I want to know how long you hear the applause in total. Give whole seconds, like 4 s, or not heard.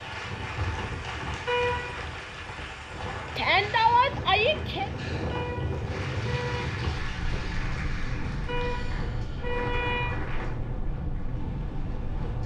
12 s.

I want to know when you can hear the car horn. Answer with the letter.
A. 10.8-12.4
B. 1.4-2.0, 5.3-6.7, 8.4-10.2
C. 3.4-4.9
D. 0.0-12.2
B.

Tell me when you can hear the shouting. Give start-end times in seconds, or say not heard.
3.4-4.9.